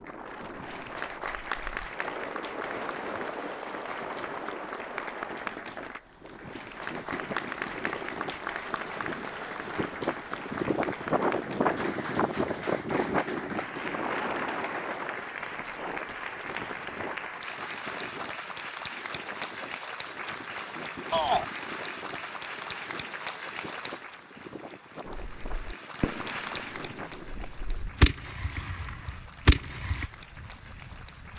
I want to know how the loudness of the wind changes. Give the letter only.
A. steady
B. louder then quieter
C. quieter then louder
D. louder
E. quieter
B.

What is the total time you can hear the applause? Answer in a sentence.
The applause can be heard for 31 seconds in total.